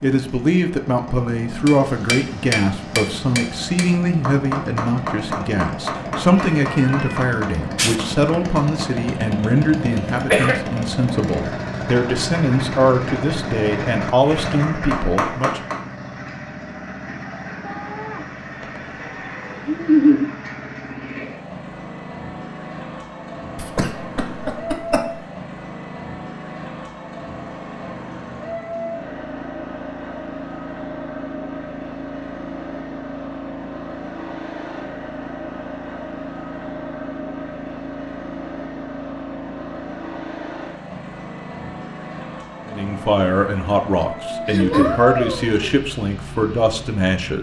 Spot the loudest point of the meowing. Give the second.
20 s.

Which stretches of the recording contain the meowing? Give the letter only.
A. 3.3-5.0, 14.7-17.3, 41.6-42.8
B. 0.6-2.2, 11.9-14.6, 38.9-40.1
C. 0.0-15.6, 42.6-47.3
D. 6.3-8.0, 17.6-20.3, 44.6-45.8
D.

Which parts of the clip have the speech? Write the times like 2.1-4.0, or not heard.
0.0-15.6, 42.6-47.3.